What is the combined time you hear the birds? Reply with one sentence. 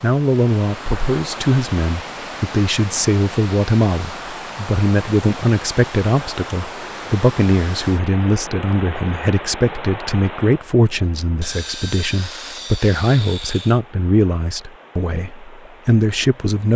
You can't hear the birds here.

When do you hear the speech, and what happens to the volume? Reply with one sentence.
The speech can be heard from 0.0 to 16.7 s, at a steady volume.